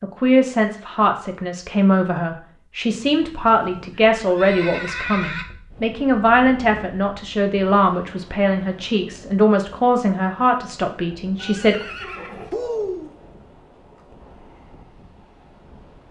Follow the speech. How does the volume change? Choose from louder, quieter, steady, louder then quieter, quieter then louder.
steady.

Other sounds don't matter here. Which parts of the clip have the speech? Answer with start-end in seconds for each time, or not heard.
0.0-11.8.